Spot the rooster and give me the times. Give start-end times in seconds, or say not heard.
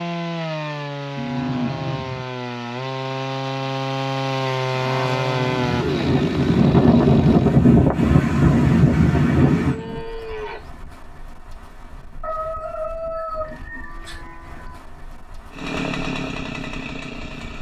12.2-14.2.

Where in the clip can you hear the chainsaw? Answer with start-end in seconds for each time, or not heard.
0.0-7.7, 15.5-17.5.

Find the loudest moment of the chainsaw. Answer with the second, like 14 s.
5 s.